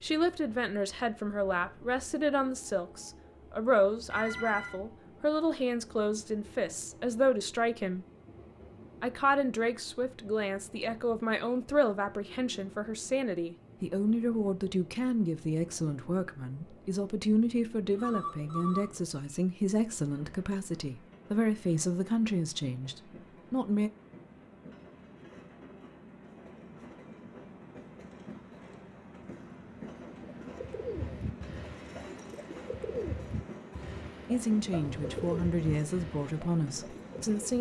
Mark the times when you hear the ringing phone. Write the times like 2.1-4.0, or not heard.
4.1-4.8, 17.9-18.9, 34.7-35.5.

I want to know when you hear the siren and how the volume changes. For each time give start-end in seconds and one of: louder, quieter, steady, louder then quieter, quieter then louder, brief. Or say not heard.
not heard.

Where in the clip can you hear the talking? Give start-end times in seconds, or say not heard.
0.0-8.1, 9.0-23.9, 34.2-37.5.